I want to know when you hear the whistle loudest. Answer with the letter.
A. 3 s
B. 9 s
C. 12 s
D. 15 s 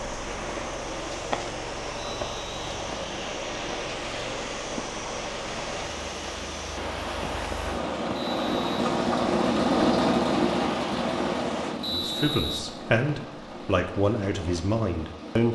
C.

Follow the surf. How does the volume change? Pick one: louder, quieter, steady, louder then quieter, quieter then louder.
quieter.